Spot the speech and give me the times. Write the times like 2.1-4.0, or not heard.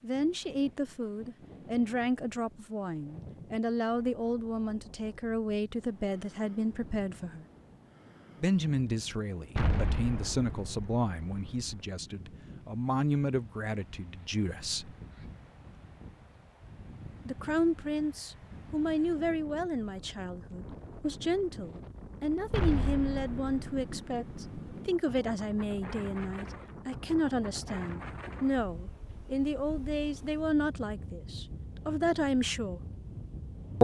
0.0-7.5, 8.4-14.9, 17.2-32.8.